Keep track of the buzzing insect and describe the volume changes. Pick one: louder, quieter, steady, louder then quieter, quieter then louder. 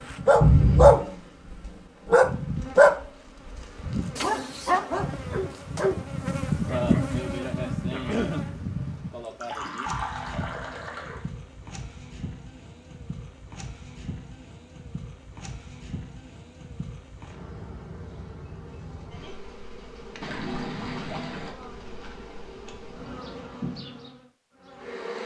louder then quieter.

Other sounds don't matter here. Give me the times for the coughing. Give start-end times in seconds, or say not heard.
7.9-8.4.